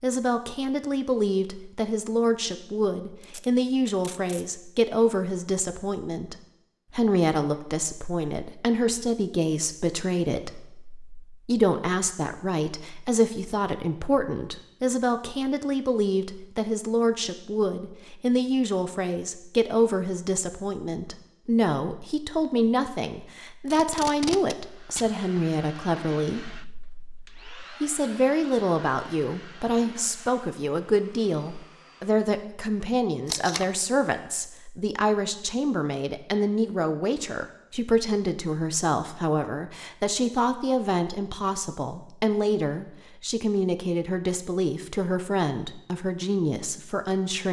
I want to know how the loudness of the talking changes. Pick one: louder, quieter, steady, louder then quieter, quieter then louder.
steady.